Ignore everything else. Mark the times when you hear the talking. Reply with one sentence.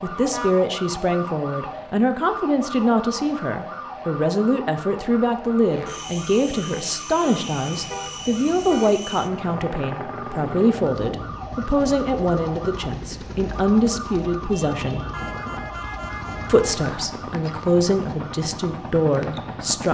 You can hear the talking from 0.0 to 15.1 s and from 16.4 to 19.8 s.